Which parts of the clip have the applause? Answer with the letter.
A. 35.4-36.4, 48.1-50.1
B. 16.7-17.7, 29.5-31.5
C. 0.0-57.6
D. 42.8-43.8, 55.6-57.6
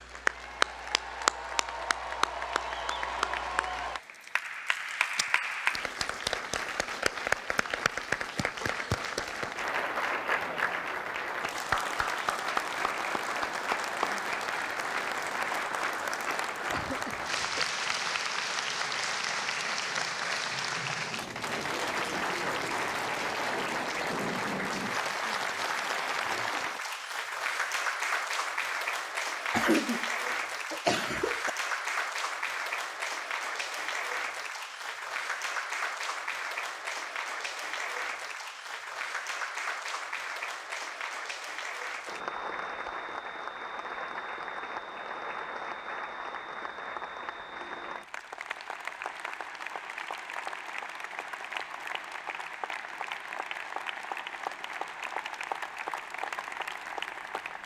C.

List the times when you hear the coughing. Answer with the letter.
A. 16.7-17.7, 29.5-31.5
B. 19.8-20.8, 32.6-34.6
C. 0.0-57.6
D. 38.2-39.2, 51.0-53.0
A.